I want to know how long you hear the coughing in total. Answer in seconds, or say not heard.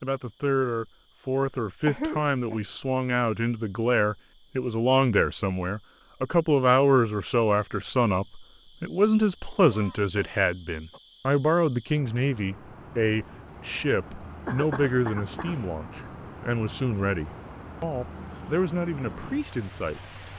3 s.